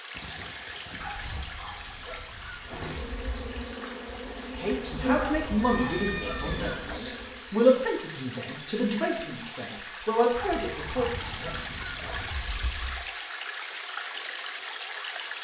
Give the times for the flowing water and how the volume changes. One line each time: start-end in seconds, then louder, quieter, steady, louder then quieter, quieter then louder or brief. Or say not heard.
0.0-15.3 louder.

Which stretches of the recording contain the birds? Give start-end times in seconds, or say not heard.
not heard.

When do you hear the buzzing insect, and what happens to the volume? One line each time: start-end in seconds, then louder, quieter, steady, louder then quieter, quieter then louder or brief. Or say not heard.
2.6-7.5 louder then quieter.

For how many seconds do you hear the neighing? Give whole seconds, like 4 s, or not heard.
4 s.